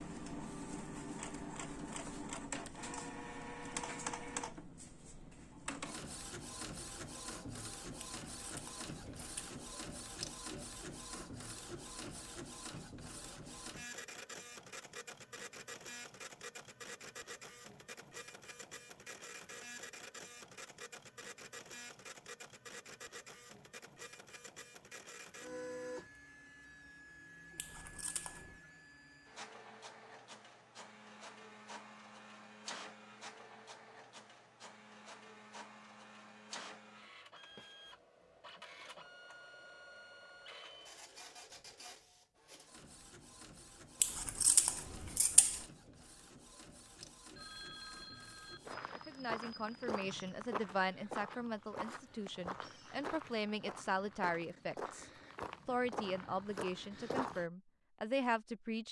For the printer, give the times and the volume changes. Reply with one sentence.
The printer can be heard from 0.0 to 48.8 s, getting quieter.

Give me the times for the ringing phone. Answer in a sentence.
You can hear the ringing phone from 47.4 to 48.8 s.